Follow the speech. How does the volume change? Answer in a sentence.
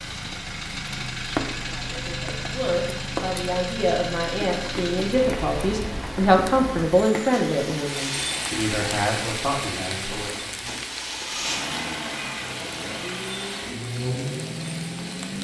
The volume of the speech goes up, then down.